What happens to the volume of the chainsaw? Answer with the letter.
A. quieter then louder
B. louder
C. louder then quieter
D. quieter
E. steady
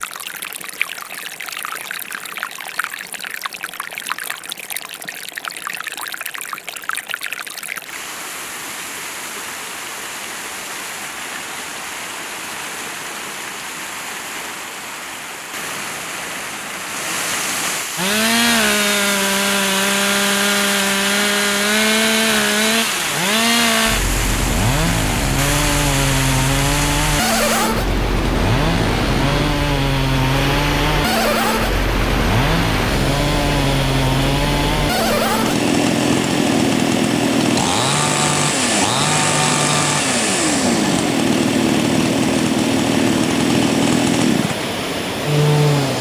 E.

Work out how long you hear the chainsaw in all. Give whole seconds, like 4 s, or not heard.
28 s.